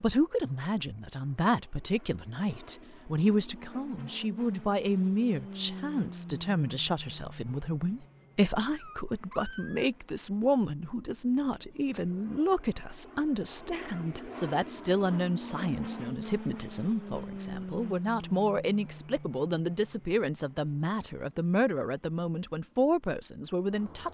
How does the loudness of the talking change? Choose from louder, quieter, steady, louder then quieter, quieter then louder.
steady.